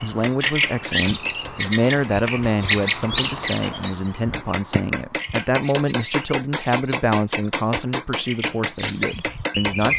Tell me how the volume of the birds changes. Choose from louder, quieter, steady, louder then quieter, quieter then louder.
quieter then louder.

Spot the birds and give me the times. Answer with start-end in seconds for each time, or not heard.
0.0-9.9.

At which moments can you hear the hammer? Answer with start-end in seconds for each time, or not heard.
0.2-9.9.